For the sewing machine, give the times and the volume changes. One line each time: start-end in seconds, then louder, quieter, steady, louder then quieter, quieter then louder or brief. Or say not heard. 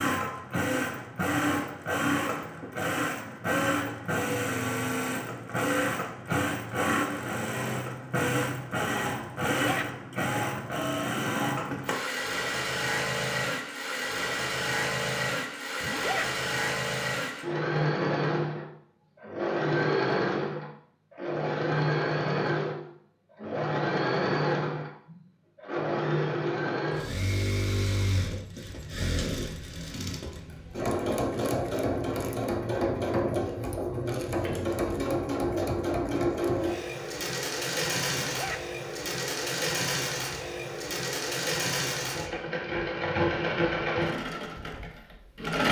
0.0-45.6 steady.